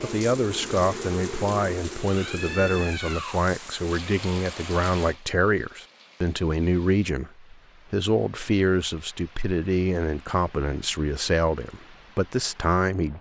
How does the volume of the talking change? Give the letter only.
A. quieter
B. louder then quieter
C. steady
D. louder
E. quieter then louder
C.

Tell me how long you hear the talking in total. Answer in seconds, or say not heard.
13 s.